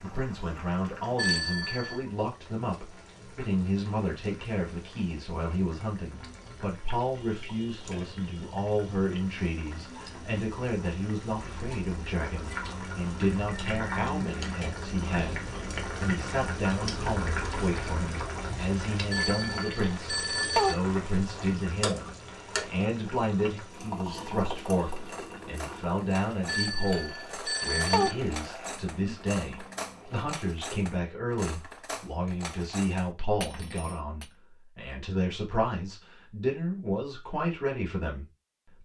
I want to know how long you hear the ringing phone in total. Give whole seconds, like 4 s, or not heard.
4 s.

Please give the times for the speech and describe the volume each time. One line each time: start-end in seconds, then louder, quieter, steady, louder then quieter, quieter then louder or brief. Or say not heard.
0.0-38.8 steady.